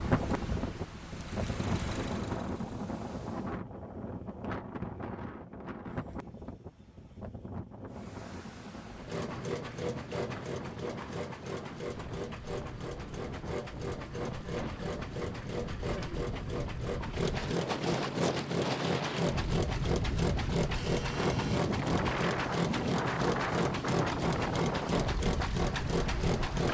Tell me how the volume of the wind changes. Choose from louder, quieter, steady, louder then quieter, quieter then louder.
quieter then louder.